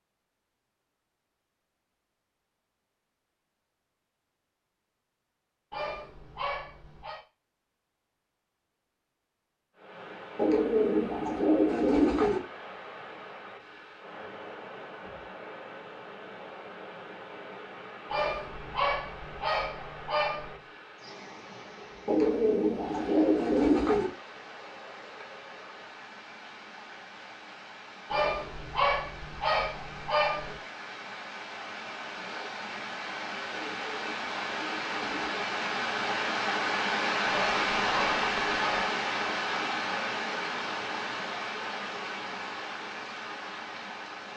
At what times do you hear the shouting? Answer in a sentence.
You can't hear the shouting here.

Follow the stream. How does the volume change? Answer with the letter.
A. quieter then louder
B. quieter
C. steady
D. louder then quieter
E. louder
E.